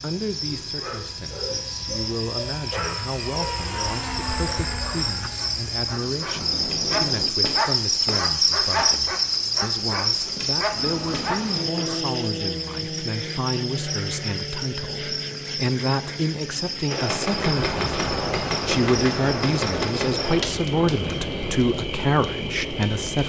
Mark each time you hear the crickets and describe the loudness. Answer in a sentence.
You can hear the crickets from 0.0 to 23.2 s, getting louder then quieter.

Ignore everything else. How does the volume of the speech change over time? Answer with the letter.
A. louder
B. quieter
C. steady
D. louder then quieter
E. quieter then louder
A.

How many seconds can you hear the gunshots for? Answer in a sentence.
The gunshots can be heard for 4 seconds in total.